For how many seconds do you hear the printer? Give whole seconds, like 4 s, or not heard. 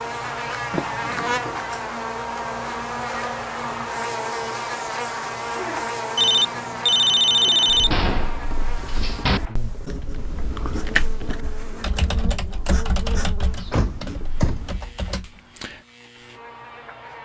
not heard.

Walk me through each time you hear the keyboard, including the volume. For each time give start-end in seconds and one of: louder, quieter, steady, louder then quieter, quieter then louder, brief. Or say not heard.
9.8-15.8 quieter.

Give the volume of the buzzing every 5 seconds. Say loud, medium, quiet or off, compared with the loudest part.
loud, loud, quiet, quiet.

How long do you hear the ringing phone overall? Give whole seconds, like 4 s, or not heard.
2 s.